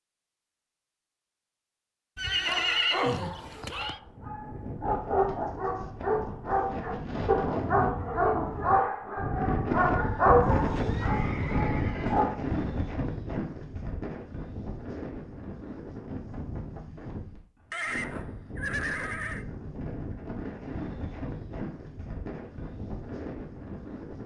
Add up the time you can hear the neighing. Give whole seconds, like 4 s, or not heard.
5 s.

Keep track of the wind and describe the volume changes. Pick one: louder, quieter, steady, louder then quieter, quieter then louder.
louder then quieter.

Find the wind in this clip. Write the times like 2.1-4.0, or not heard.
3.9-24.2.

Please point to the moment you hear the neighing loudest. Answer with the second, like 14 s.
3 s.